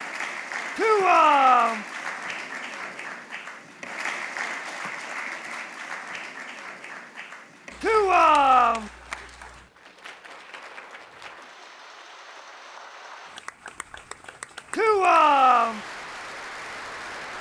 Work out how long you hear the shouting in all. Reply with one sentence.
The shouting can be heard for 3 seconds in total.